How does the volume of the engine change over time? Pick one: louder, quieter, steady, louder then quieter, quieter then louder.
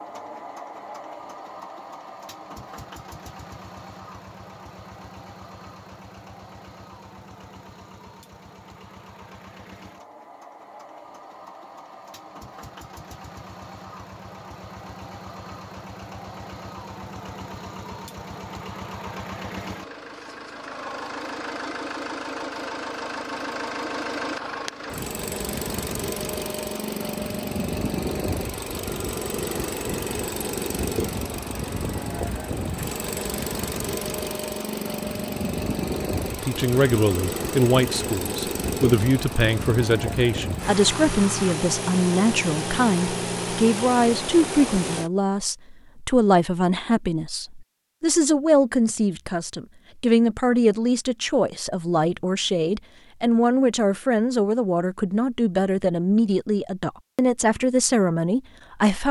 louder.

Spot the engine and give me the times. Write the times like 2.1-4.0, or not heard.
0.0-45.1.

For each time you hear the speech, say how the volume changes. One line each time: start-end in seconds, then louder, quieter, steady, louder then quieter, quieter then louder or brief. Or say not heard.
36.4-59.0 steady.